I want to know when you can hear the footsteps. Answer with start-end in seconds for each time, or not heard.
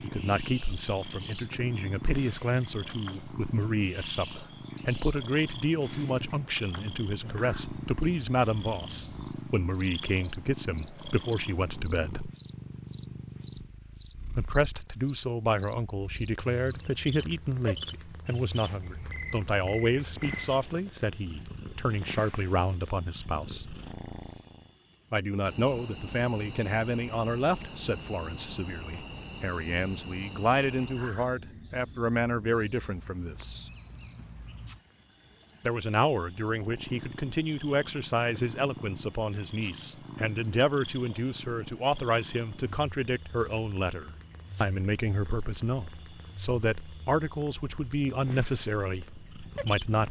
not heard.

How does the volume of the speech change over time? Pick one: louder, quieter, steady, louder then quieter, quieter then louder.
steady.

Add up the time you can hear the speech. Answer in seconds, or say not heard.
45 s.